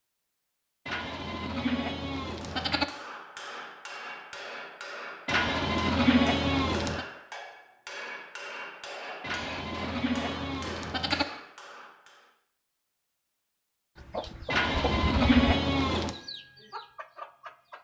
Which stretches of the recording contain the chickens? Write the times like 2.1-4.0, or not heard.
13.9-17.8.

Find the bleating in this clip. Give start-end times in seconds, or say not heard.
0.8-2.9, 5.2-7.0, 9.2-11.2, 14.5-16.1.